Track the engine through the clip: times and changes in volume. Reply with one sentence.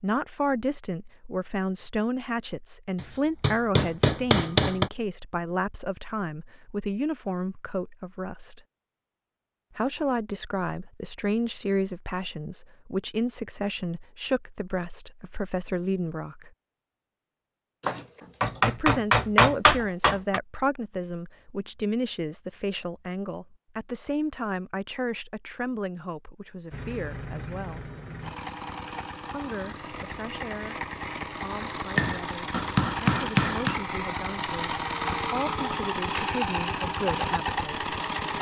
You can hear the engine from 26.7 to 38.3 s, getting louder.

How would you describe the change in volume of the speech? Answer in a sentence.
The loudness of the speech goes down.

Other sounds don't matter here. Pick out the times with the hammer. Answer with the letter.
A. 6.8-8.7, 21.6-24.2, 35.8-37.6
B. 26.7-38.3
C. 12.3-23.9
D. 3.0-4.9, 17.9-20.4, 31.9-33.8
D.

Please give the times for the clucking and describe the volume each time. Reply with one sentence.
The clucking can't be heard in this clip.